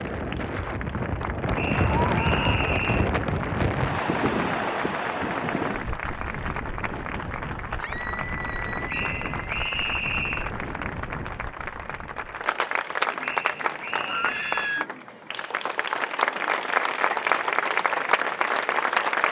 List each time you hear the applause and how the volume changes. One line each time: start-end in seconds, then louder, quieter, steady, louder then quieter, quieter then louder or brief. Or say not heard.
0.0-19.2 louder.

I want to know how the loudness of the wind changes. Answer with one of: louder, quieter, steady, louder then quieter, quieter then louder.
quieter.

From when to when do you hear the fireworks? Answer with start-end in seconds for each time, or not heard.
not heard.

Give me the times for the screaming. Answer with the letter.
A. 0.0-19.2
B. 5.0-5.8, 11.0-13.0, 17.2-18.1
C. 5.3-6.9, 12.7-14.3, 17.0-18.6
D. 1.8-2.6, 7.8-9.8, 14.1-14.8
D.